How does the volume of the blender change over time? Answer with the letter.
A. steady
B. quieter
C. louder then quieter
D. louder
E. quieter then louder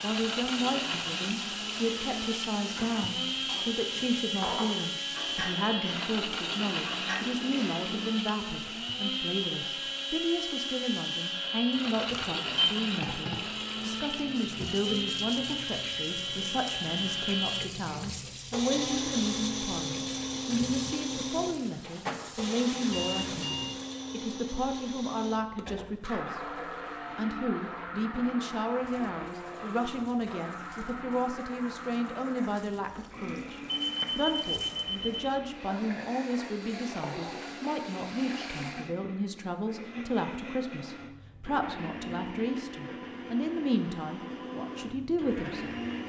B.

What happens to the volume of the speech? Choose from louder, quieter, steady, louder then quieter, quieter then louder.
steady.